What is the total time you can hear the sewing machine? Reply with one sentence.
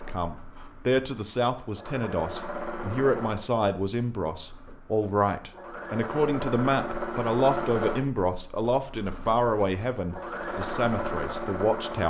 The sewing machine can be heard for 12 seconds in total.